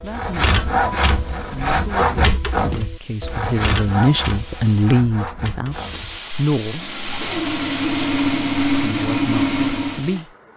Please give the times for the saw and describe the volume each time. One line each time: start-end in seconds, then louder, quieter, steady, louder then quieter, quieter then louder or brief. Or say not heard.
0.0-10.2 quieter then louder.